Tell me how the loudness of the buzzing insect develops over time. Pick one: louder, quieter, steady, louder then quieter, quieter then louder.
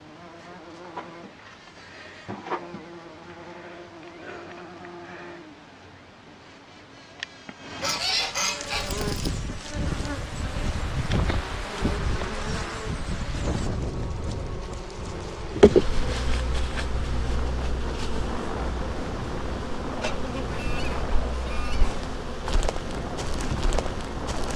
louder then quieter.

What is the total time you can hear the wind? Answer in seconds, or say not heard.
16 s.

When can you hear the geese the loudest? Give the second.
8 s.